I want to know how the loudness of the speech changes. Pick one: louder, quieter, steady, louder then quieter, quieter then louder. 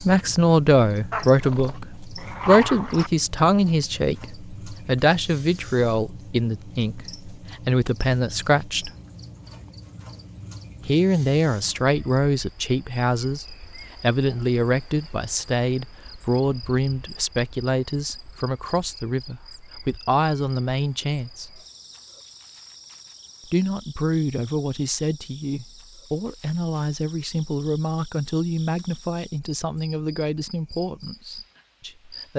quieter.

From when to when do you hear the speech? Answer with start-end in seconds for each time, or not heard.
0.0-8.9, 10.8-21.6, 23.4-32.3.